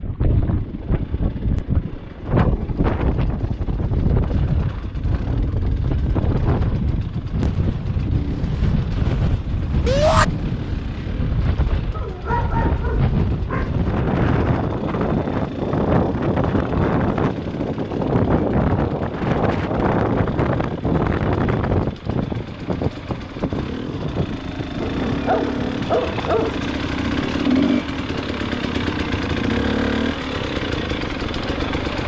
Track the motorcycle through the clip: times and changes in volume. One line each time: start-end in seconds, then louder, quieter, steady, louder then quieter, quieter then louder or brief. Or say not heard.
0.1-32.0 louder.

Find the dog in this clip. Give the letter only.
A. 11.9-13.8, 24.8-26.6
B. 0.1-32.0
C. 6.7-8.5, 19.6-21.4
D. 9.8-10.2
A.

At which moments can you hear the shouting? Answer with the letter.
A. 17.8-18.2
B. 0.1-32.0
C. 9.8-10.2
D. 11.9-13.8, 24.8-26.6
C.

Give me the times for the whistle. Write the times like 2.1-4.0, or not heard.
not heard.